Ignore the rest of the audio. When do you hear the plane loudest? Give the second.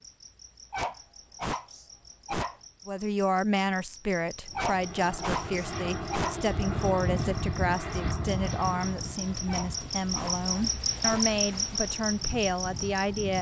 7 s.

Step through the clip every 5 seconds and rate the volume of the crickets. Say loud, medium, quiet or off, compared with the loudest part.
quiet, medium, loud.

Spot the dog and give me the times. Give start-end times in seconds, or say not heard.
0.7-2.6, 4.5-6.4, 9.4-11.3.